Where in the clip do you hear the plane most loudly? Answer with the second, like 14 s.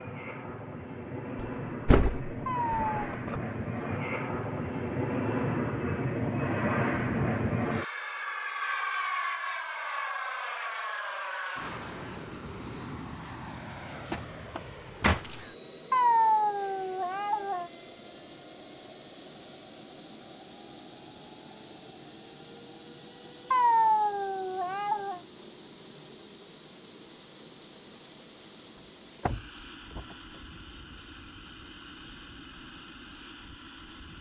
7 s.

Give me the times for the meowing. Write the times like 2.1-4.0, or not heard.
2.5-3.1, 15.9-17.7, 23.5-25.2.